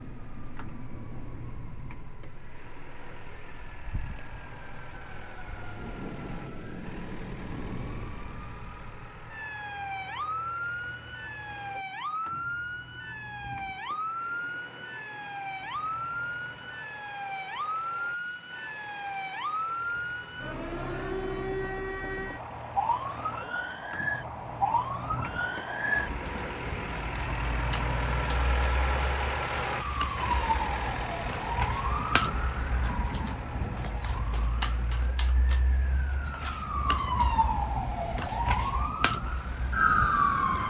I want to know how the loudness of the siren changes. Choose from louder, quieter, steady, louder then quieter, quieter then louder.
louder.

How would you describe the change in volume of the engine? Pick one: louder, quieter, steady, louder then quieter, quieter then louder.
louder then quieter.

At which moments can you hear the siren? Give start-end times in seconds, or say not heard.
0.0-40.6.